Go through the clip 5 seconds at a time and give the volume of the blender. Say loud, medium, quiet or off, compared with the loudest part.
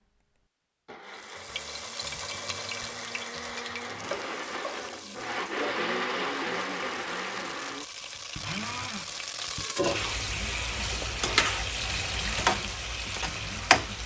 medium, loud, medium.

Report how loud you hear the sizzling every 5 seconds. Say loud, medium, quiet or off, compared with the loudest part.
medium, medium, loud.